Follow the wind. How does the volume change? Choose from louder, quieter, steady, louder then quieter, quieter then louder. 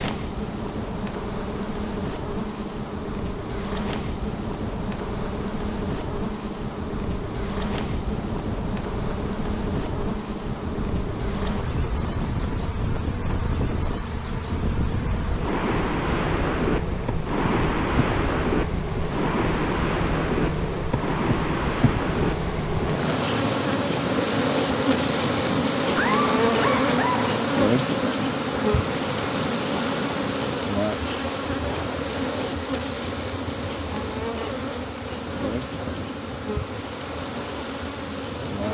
louder then quieter.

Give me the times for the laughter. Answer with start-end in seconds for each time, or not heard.
25.9-27.3.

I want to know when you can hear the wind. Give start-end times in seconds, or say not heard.
0.0-38.6.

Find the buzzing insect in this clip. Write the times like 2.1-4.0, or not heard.
0.0-38.6.